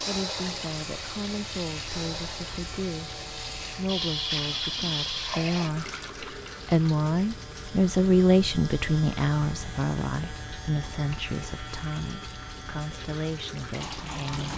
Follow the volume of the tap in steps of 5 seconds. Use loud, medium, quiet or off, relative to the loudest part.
loud, loud, medium.